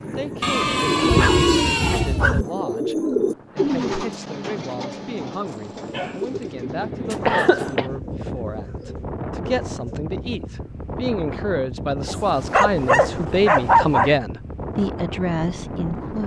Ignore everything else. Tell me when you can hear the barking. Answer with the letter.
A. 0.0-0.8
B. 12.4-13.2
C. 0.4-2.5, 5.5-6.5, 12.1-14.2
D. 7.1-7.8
C.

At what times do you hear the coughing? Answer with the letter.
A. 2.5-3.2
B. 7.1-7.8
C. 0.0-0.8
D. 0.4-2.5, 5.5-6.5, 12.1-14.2
B.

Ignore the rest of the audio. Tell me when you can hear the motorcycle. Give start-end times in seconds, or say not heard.
not heard.